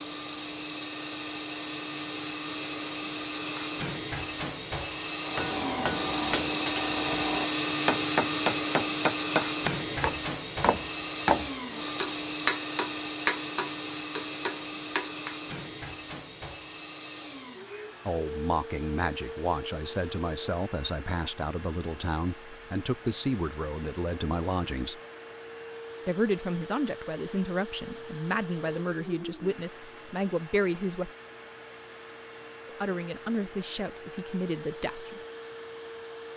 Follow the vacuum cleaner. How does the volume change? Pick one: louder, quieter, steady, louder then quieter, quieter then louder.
quieter.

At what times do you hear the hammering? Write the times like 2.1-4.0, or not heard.
5.2-15.3.